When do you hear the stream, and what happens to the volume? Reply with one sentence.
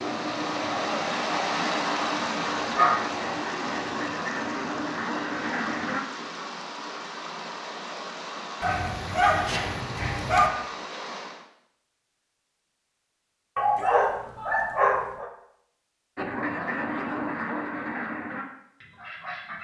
You can hear the stream from 0.0 to 11.4 s, getting quieter.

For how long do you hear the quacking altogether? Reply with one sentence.
The quacking can be heard for 9 seconds in total.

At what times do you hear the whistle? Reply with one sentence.
You can't hear the whistle here.